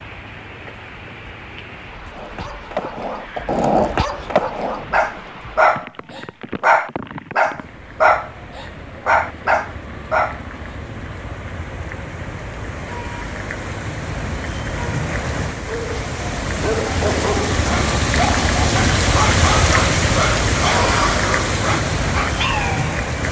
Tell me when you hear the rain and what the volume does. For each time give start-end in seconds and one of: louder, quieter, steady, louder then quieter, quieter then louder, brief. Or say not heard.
0.0-23.2 louder.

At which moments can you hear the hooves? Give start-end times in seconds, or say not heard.
not heard.